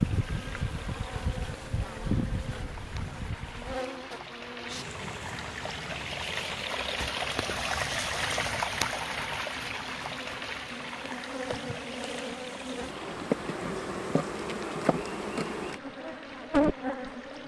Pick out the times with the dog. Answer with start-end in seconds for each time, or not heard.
not heard.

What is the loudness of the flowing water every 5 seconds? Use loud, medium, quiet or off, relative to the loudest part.
quiet, loud, medium, quiet.